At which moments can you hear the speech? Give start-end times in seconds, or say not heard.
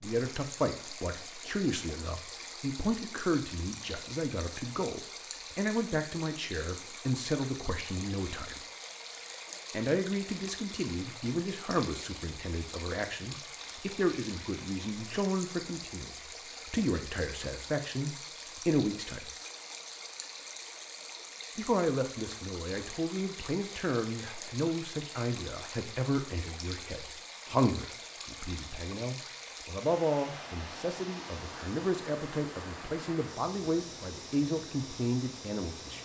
0.0-8.6, 9.7-19.2, 21.6-36.0.